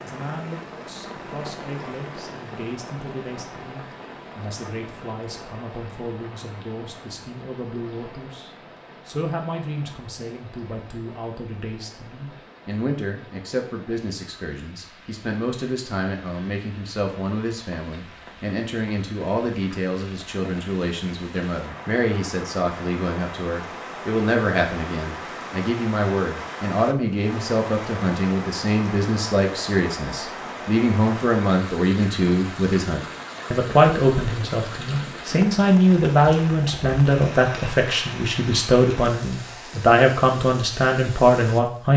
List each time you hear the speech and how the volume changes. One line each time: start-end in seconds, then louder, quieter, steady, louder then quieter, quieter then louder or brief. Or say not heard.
0.0-41.9 louder.